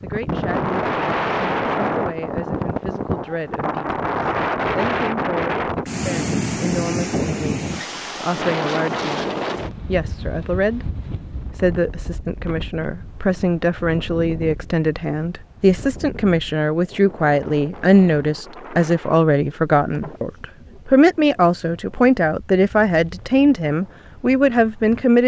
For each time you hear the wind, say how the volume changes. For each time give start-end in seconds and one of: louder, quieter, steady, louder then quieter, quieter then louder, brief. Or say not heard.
0.0-25.2 quieter.